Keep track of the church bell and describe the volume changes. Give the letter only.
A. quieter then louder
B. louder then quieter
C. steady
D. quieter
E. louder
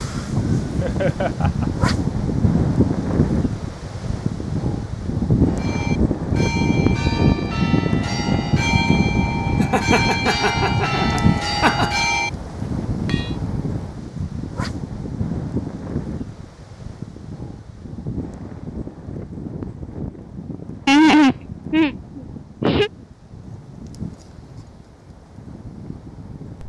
E.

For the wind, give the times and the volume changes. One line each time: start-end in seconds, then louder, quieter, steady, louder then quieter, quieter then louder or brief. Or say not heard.
0.0-26.6 quieter.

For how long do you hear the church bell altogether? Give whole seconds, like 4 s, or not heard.
8 s.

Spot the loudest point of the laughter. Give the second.
21 s.